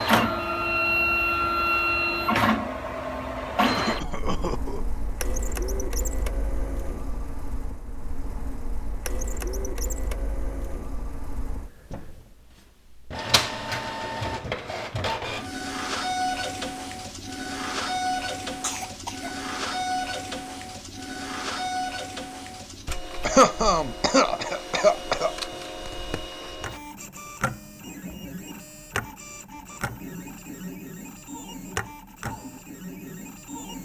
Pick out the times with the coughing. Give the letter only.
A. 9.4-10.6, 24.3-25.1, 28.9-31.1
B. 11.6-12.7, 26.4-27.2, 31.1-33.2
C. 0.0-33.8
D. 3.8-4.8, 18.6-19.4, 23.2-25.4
D.